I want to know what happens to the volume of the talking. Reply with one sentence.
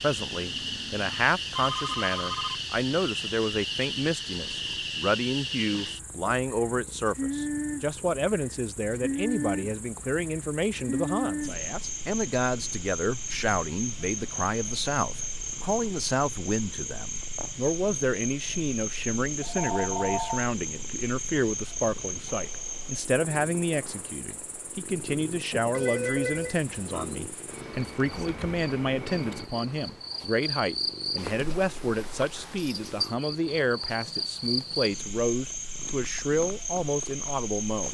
The volume of the talking stays about the same.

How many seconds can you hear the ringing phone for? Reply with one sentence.
The ringing phone can be heard for 5 seconds in total.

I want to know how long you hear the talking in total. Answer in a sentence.
The talking can be heard for 38 seconds in total.